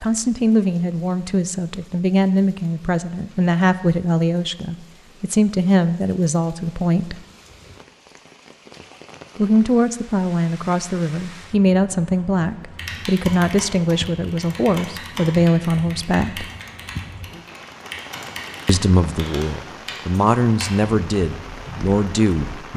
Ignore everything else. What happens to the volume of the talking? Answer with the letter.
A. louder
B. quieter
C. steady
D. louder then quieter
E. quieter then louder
C.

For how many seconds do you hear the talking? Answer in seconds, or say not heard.
18 s.